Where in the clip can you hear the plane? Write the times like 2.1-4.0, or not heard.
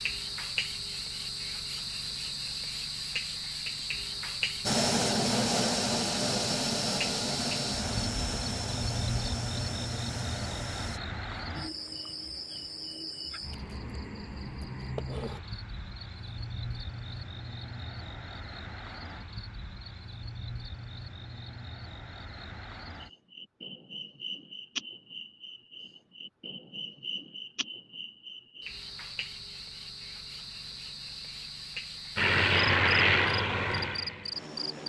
4.7-11.0, 32.1-34.8.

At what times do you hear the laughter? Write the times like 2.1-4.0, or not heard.
not heard.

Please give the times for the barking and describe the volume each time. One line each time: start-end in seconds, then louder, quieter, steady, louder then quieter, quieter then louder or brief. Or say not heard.
not heard.